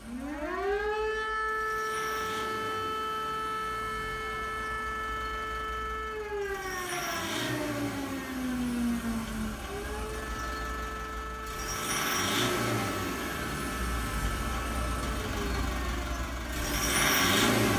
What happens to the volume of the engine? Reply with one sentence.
The volume of the engine goes up.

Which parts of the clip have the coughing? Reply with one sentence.
The coughing can't be heard in this clip.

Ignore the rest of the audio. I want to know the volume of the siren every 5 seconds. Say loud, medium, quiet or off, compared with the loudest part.
loud, loud, medium, medium.